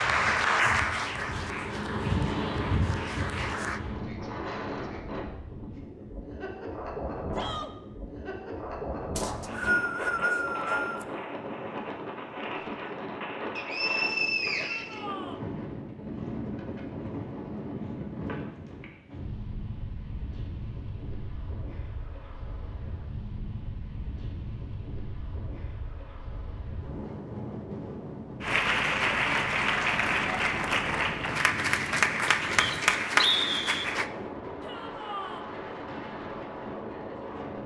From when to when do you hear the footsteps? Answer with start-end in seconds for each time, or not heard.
not heard.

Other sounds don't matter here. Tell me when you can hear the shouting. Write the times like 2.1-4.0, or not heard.
7.3-7.8, 14.6-15.4, 34.6-35.5.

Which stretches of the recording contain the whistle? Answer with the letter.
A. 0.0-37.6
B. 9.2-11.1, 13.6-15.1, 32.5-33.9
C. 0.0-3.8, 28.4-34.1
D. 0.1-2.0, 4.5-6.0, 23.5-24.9
B.